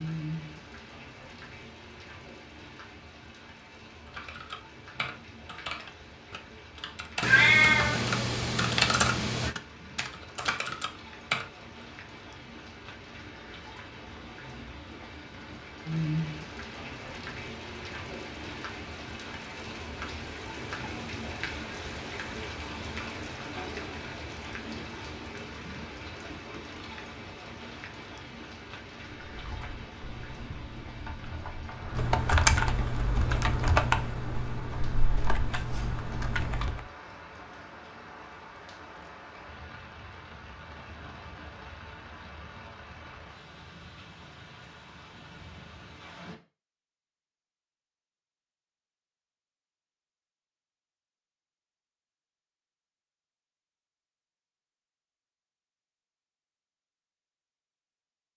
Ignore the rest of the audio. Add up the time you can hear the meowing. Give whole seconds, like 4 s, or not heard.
2 s.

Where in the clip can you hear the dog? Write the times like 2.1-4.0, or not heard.
not heard.